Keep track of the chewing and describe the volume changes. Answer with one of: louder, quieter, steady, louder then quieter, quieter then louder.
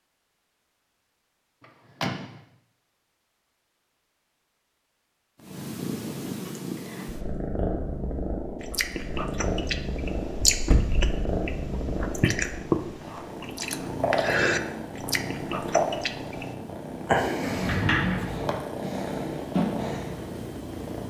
louder then quieter.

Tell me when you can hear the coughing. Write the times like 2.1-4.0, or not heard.
not heard.